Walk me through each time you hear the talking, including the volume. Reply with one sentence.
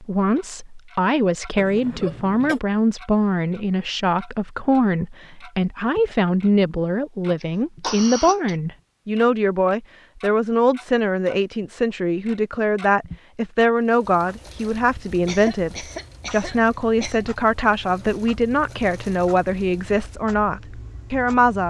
The talking can be heard from 0.0 to 21.6 s, at a steady volume.